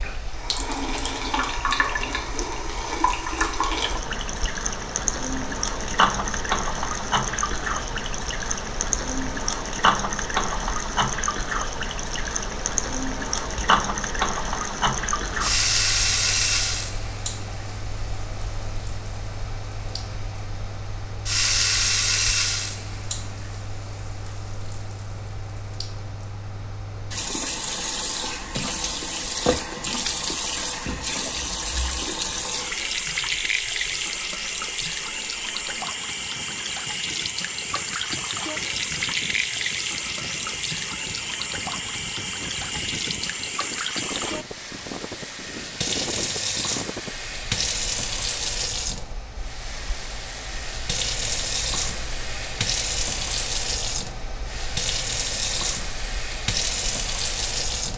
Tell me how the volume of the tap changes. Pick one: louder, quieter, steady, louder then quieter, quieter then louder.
steady.